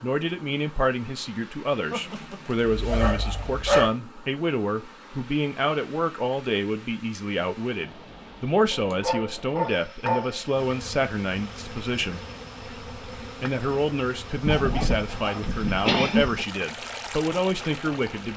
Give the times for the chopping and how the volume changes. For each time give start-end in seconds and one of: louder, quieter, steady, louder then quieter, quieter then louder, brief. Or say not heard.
not heard.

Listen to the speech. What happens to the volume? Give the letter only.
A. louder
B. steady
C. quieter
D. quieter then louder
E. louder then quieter
B.